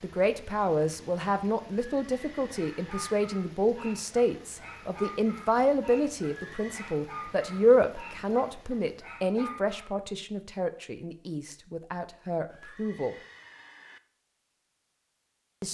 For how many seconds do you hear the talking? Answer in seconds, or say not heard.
13 s.